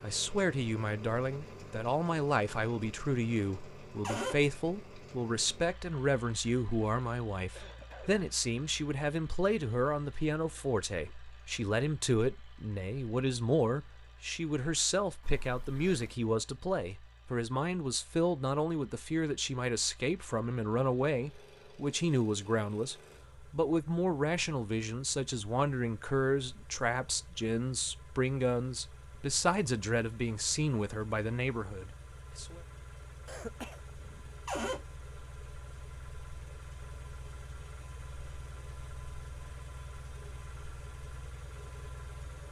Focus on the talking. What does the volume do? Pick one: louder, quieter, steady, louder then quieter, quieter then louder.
steady.